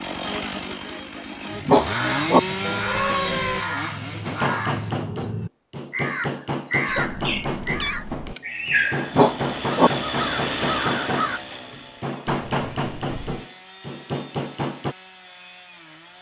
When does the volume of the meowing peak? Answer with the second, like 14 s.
3 s.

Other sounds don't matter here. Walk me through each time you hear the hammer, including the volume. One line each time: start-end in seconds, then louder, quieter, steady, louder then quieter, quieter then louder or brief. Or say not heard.
4.2-14.9 steady.